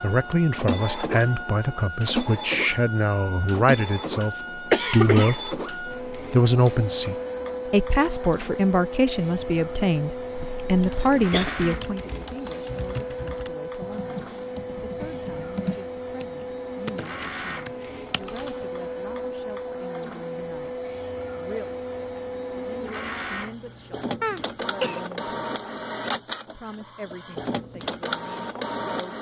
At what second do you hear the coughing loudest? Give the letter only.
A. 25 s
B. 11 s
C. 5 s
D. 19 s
C.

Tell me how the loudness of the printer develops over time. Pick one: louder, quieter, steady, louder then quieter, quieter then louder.
steady.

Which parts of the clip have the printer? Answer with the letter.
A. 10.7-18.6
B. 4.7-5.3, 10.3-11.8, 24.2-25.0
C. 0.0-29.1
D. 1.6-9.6
C.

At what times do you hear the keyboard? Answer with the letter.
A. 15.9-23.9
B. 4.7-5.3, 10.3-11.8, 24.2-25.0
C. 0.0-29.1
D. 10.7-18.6
D.